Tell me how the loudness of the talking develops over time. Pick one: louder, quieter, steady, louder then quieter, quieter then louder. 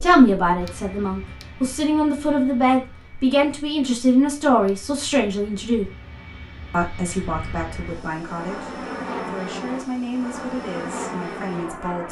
quieter.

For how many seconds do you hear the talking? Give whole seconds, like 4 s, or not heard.
11 s.